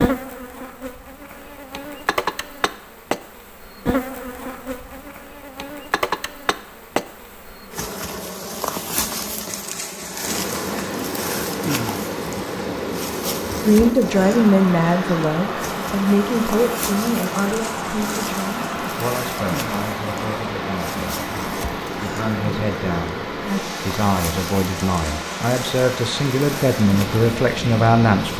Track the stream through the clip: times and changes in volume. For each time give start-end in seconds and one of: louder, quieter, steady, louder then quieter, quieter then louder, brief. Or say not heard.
10.2-28.3 steady.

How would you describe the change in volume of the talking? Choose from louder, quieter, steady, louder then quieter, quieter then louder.
quieter then louder.